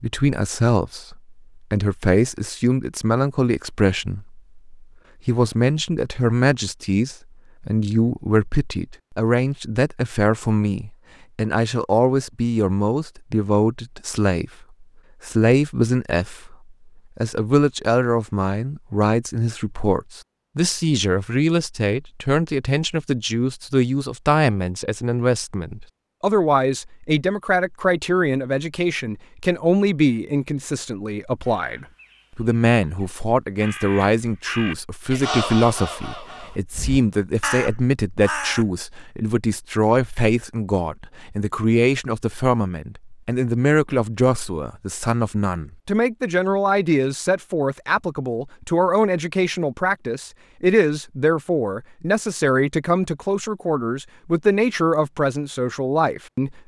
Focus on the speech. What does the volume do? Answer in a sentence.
The loudness of the speech stays about the same.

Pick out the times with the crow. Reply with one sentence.
The crow can be heard from 31.4 to 38.6 s.